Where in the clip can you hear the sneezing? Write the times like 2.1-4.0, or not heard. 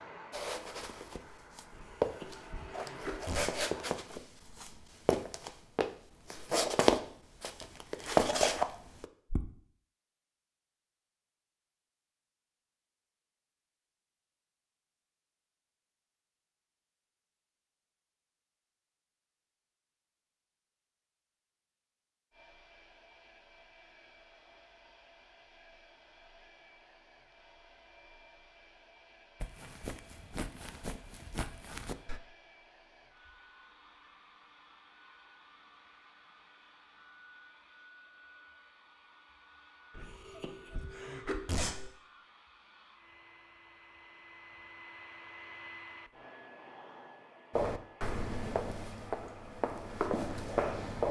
1.7-3.6, 40.0-41.9.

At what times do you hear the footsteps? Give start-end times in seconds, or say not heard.
0.3-9.5, 29.4-32.2, 47.5-51.0.